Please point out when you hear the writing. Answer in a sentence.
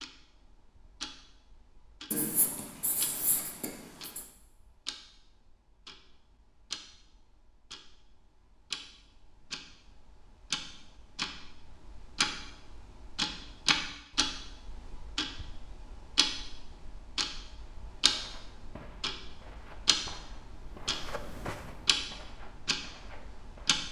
You can hear the writing from 2.1 to 4.2 s.